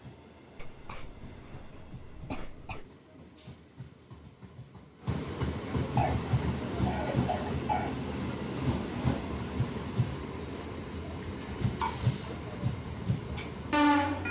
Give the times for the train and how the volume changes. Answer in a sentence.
You can hear the train from 0.0 to 14.2 s, getting louder.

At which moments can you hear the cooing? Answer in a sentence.
You can't hear the cooing here.